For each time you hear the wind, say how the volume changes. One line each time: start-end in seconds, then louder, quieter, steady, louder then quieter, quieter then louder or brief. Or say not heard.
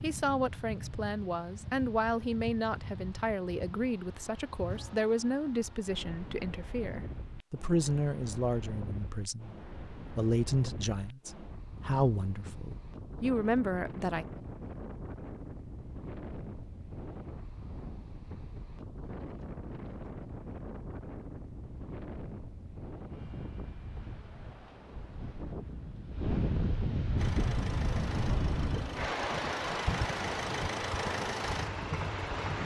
0.0-32.6 louder.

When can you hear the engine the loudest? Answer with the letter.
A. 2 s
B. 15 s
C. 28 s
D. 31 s
D.